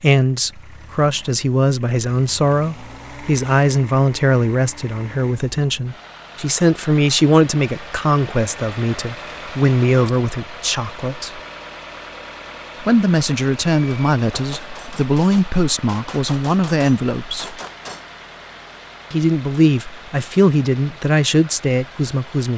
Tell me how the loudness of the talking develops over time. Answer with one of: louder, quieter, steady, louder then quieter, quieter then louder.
steady.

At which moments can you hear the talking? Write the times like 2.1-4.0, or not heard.
0.0-11.4, 12.8-17.6, 19.1-22.5.